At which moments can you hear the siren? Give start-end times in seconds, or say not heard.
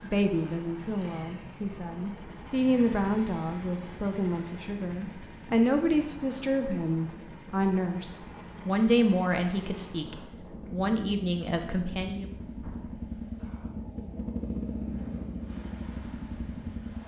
not heard.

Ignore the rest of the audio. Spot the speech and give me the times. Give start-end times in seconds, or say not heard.
0.0-12.2.